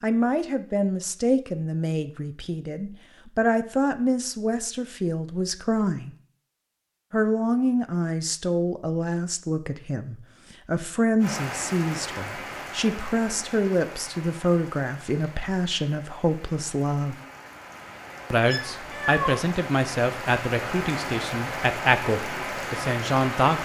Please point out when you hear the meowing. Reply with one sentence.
The meowing can be heard from 18.4 to 19.4 s.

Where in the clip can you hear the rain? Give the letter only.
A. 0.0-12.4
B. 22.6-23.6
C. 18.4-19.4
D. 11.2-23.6
D.